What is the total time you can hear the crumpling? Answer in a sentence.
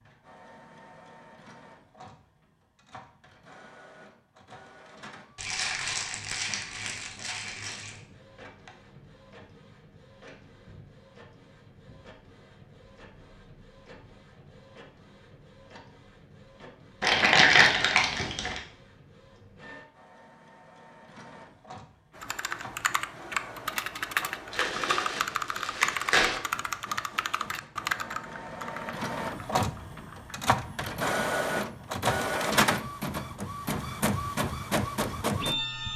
You can hear the crumpling for 6 seconds altogether.